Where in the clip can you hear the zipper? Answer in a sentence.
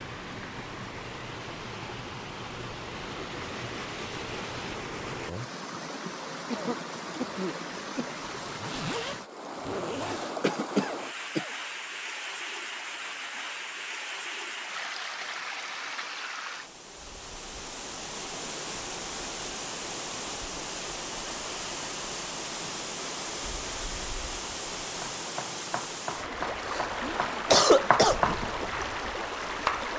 You can hear the zipper from 8.3 to 10.4 s.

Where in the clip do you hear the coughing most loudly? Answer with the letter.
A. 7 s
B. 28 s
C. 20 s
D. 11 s
B.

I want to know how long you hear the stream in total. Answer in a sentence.
The stream can be heard for 30 seconds in total.